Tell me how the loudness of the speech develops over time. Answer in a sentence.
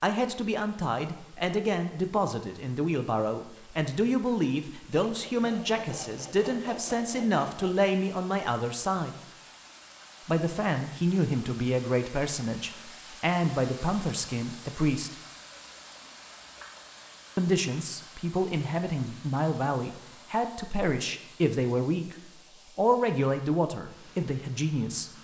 The volume of the speech stays about the same.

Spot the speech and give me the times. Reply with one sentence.
The speech can be heard from 0.0 to 9.3 s, from 10.2 to 15.2 s and from 17.4 to 25.1 s.